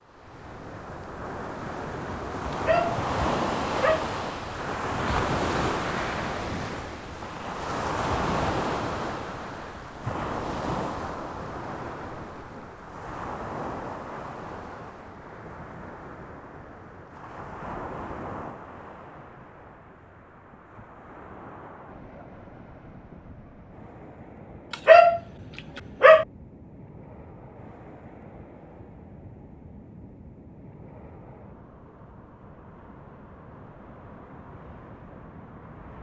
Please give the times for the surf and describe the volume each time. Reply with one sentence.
You can hear the surf from 0.0 to 35.9 s, getting quieter.